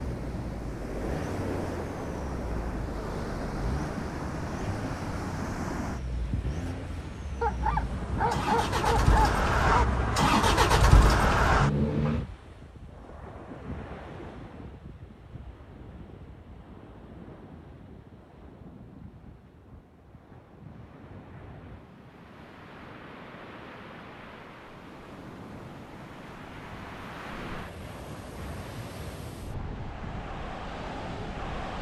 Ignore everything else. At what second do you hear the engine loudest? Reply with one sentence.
The volume of the engine peaks at 11 seconds.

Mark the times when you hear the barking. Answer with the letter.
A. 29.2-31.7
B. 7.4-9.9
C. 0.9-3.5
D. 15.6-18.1
B.